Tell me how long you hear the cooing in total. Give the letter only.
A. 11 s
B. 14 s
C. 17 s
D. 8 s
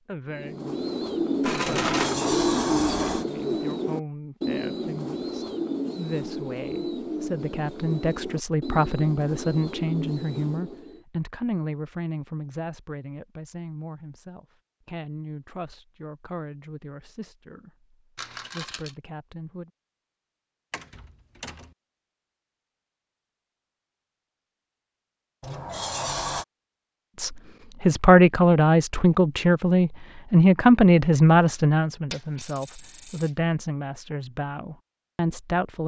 A.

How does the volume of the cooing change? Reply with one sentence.
The loudness of the cooing goes down.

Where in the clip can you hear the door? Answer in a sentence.
The door can be heard from 1.6 to 3.2 s, from 20.7 to 21.7 s and from 25.4 to 26.4 s.